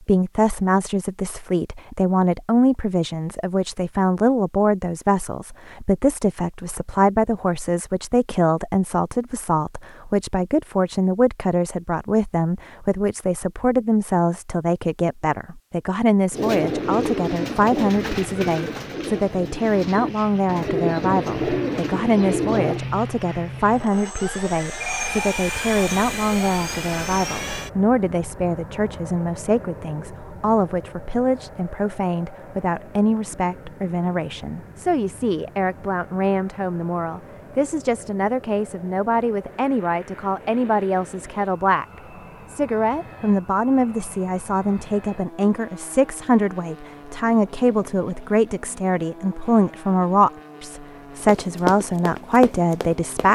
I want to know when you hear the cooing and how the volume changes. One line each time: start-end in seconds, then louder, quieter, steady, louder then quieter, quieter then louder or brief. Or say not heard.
16.3-22.8 quieter then louder.